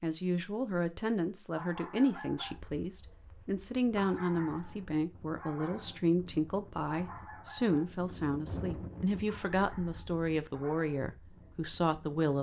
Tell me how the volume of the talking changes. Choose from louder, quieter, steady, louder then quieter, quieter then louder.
steady.